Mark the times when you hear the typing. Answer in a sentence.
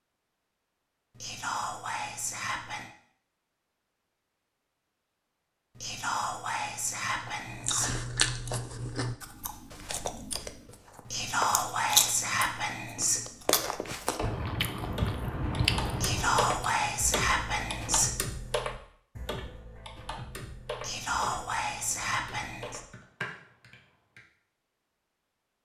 The typing can be heard from 14.2 to 24.2 s.